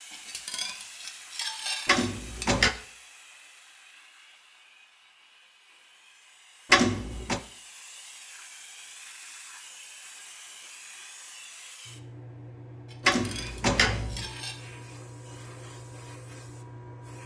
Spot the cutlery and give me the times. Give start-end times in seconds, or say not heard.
0.1-2.6, 12.8-14.6.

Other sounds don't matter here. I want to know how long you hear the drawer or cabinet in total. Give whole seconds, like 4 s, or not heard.
3 s.